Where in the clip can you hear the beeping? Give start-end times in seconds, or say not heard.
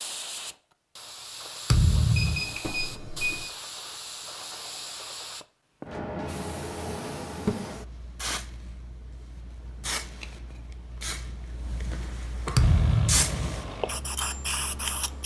2.1-3.5.